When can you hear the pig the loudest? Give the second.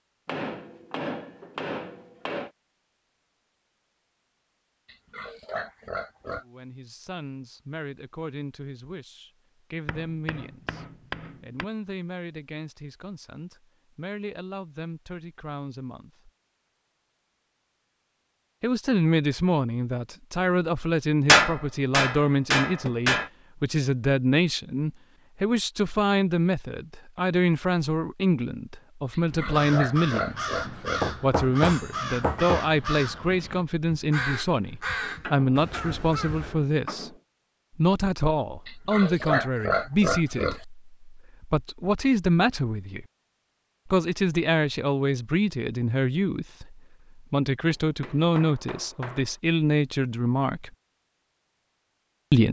39 s.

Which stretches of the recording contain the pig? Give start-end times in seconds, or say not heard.
4.8-6.5, 29.1-31.1, 38.6-40.6.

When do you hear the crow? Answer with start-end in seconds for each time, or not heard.
29.3-36.5.